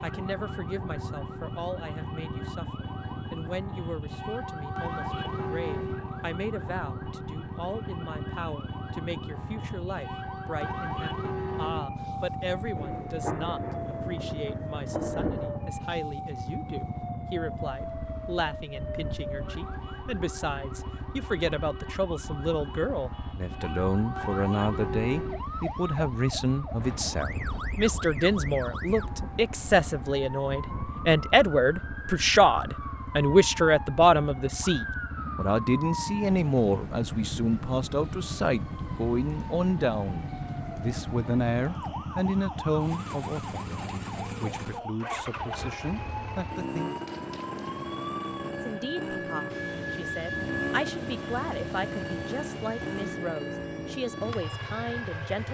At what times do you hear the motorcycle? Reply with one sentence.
The motorcycle can be heard from 0.0 to 55.4 s.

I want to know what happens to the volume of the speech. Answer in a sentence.
The volume of the speech goes up, then down.